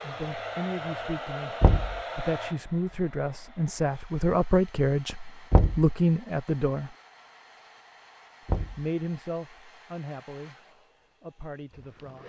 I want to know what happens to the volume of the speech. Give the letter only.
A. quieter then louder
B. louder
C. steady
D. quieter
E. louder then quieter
E.